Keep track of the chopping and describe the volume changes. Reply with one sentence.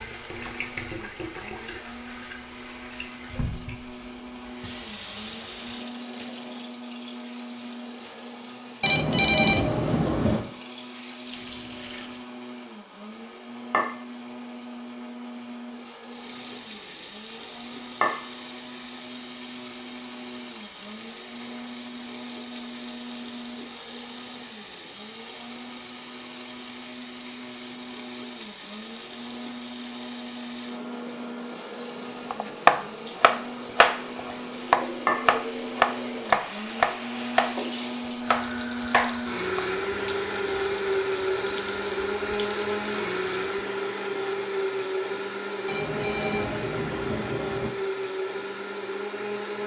The loudness of the chopping goes down.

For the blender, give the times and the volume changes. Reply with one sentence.
The blender can be heard from 0.0 to 49.6 s, getting louder.